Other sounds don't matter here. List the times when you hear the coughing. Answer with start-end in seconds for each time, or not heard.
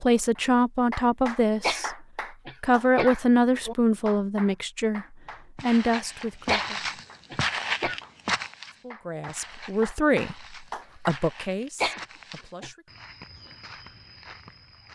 1.6-3.2, 6.5-8.0, 11.8-12.7.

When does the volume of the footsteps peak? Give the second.
8 s.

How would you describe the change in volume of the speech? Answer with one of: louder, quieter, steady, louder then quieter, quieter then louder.
quieter.